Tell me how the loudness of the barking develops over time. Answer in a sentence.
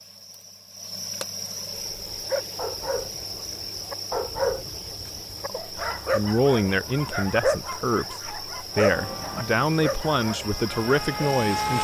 The loudness of the barking goes up, then down.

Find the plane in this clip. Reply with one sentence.
You can hear the plane from 8.7 to 11.7 s.